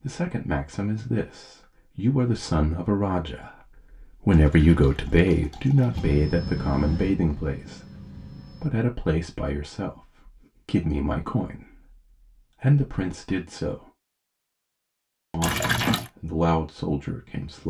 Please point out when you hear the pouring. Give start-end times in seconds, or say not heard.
4.3-6.2, 15.4-16.1.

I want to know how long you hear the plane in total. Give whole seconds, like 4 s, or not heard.
3 s.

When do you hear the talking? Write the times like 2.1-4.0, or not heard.
0.0-3.5, 4.2-7.8, 8.6-11.9, 12.6-13.8, 15.3-17.6.